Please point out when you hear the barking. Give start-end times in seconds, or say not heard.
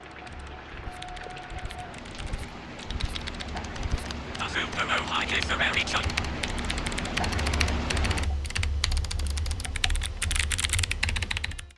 not heard.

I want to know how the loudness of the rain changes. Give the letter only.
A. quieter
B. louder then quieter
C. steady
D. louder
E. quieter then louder
D.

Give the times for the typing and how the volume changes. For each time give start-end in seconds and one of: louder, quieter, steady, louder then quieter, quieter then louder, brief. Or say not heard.
0.1-11.7 louder.